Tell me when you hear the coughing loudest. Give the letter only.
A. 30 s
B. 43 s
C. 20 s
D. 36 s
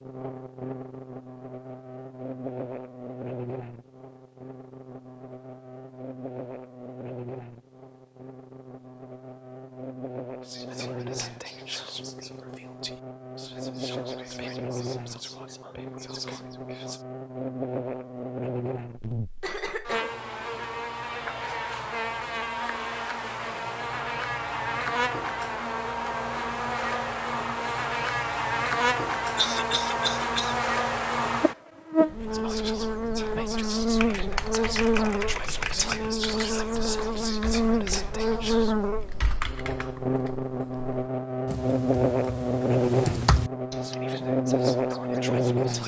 A.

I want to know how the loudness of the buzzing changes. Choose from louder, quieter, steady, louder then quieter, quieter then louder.
louder.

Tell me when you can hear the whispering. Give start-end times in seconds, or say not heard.
10.4-17.1, 32.2-38.8, 43.8-45.8.